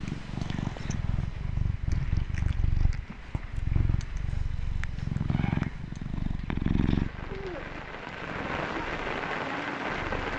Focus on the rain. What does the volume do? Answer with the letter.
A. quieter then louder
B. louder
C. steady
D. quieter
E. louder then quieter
B.